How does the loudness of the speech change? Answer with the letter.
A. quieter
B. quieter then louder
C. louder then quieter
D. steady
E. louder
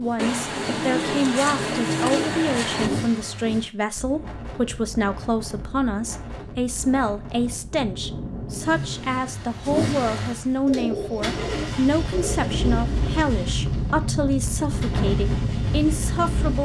D.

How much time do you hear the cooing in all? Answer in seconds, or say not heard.
5 s.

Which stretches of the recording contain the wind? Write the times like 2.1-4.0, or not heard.
3.9-16.5.